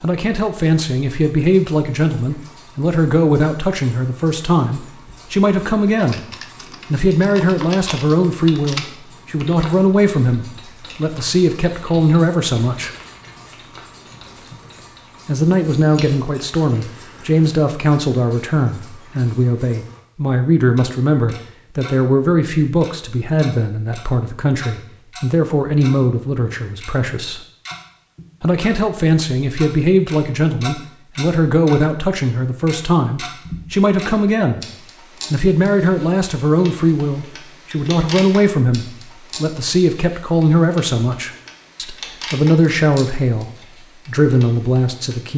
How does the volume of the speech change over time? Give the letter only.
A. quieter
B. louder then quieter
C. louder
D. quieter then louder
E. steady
E.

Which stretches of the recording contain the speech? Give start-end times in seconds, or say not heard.
0.0-6.2, 6.9-12.9, 15.2-27.4, 28.4-34.6, 35.3-45.3.